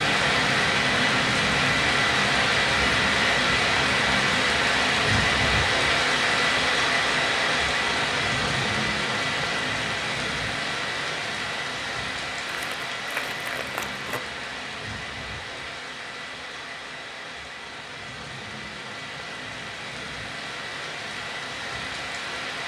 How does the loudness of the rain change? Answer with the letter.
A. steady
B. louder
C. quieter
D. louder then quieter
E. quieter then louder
C.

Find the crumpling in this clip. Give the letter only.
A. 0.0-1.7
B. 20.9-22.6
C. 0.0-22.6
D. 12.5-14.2
D.